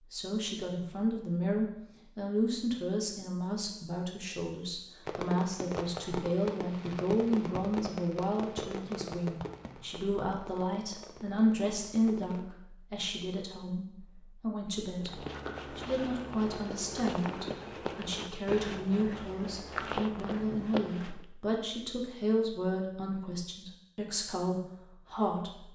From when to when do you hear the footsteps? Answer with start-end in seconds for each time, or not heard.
15.0-21.2.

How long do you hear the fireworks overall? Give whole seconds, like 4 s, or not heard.
7 s.